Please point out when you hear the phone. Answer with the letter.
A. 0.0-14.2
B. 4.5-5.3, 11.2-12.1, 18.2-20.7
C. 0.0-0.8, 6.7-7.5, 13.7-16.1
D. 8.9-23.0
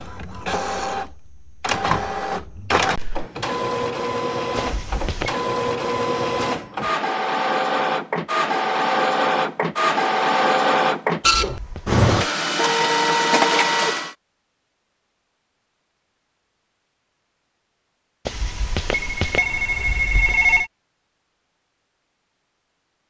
B.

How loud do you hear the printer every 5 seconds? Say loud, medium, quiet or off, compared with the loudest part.
medium, loud, loud, off, off.